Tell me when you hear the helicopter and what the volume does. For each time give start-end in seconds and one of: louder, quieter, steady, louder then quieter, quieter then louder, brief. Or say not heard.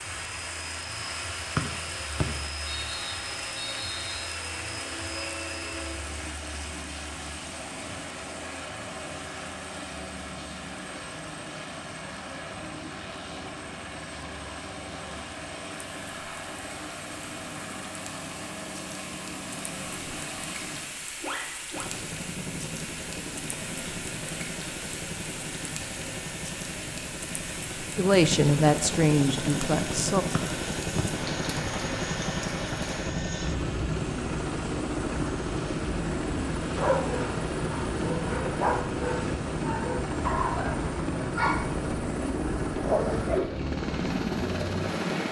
0.0-45.2 louder.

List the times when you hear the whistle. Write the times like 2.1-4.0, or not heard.
1.6-4.3, 30.4-31.1.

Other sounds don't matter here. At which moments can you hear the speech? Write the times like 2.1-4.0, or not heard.
27.9-30.2.